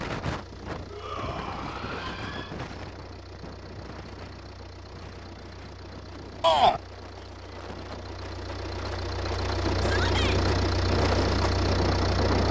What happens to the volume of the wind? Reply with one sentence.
The volume of the wind goes down, then up.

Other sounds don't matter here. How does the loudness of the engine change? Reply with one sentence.
The volume of the engine goes up.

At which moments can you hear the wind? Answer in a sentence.
You can hear the wind from 0.0 to 12.4 s.